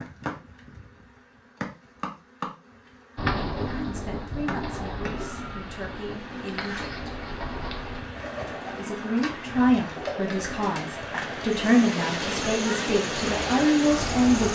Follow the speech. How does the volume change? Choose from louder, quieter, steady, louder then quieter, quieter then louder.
louder.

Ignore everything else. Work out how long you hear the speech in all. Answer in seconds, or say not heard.
9 s.